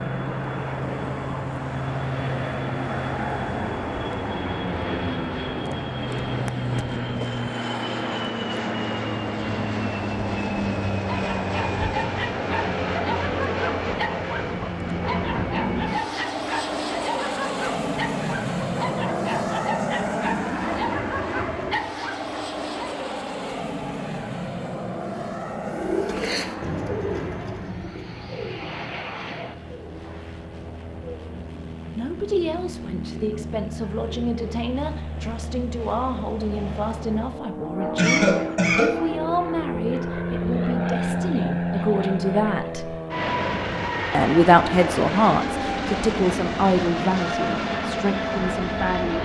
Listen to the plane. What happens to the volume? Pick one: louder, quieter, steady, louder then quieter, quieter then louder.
quieter then louder.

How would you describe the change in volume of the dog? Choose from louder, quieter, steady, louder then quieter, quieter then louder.
steady.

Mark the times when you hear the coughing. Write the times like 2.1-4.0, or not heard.
38.0-39.0.